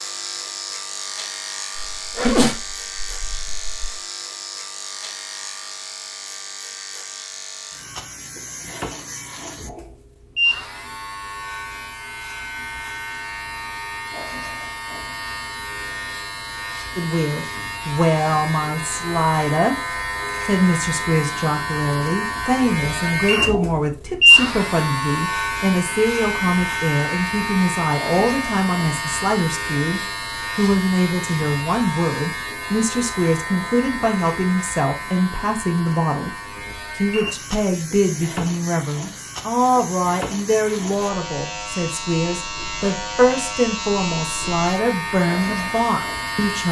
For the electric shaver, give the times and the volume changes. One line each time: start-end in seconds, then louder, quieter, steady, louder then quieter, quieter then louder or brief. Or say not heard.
0.0-46.6 louder then quieter.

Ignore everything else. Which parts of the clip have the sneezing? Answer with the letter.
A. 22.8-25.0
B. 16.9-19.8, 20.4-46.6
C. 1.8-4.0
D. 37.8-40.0
C.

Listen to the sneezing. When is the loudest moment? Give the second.
2 s.